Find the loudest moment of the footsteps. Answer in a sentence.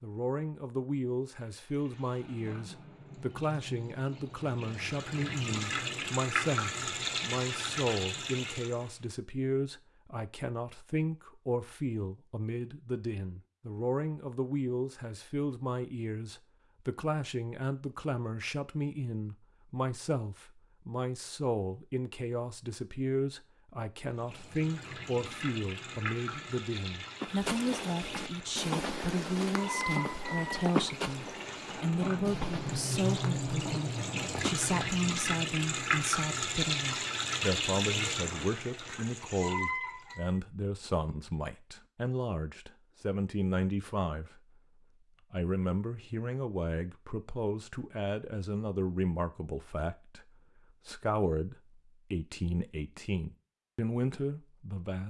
The loudest moment of the footsteps is at 31 seconds.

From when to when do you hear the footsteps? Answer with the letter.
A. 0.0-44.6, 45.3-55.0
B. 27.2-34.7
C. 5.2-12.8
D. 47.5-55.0
B.